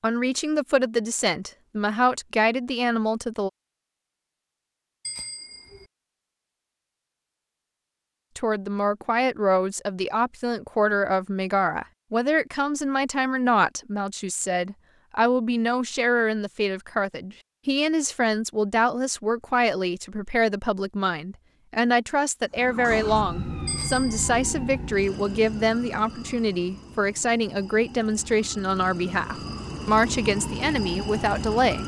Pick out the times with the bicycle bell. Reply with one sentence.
You can hear the bicycle bell from 5.0 to 5.9 s and from 23.6 to 24.3 s.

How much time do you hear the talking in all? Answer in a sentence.
The talking can be heard for 27 seconds in total.